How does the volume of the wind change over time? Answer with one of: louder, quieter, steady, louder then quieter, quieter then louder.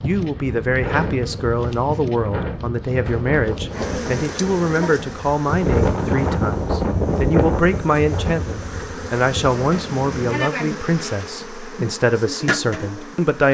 louder then quieter.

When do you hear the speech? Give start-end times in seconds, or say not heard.
0.0-13.5.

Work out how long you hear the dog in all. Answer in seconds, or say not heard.
not heard.